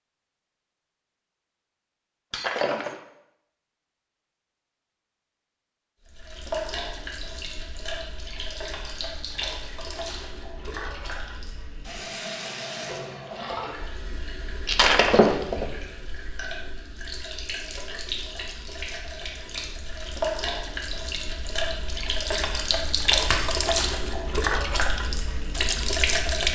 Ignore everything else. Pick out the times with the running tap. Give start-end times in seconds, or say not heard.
6.0-26.5.